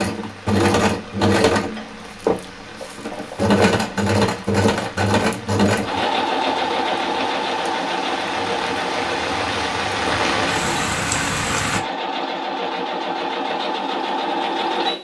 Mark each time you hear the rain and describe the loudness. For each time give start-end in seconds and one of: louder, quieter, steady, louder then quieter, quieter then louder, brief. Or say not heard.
0.0-11.8 louder.